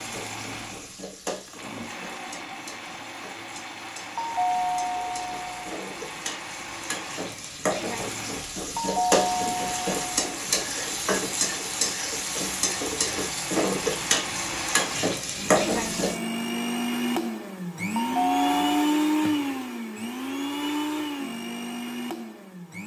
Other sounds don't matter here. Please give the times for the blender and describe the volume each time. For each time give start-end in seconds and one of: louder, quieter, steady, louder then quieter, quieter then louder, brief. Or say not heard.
0.0-22.8 louder.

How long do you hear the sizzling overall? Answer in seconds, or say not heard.
16 s.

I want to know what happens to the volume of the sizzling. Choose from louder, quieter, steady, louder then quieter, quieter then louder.
louder.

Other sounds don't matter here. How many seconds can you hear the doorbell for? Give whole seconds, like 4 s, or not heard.
4 s.